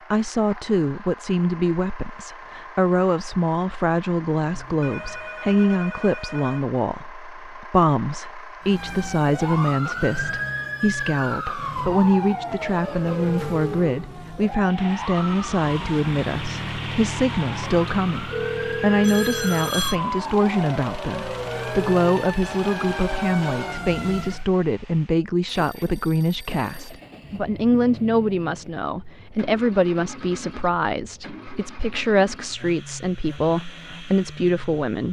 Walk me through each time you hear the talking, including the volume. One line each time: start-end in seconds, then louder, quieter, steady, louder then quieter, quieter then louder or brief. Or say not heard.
0.1-35.0 steady.